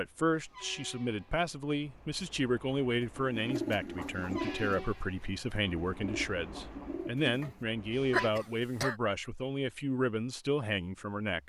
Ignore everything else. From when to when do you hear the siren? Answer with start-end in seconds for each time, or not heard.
not heard.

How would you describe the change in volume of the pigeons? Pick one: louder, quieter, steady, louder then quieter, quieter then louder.
quieter then louder.